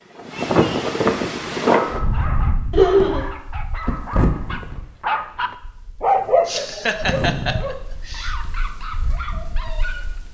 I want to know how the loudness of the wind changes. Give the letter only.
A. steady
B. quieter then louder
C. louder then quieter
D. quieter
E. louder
D.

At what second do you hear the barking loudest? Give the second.
6 s.